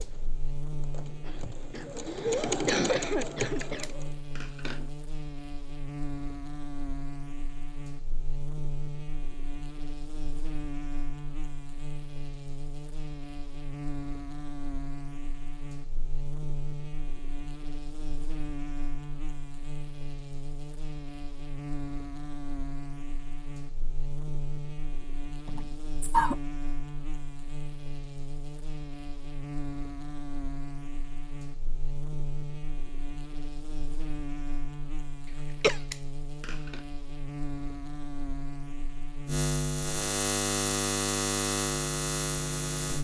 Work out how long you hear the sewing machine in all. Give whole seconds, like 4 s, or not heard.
4 s.